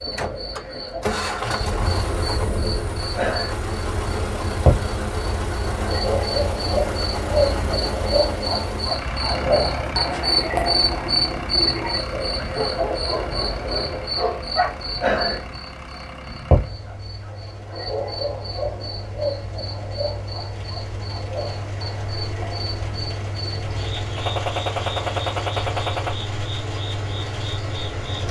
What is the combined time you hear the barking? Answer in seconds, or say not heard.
2 s.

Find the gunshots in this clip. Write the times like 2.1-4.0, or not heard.
24.1-26.1.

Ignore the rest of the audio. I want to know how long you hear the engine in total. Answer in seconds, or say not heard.
28 s.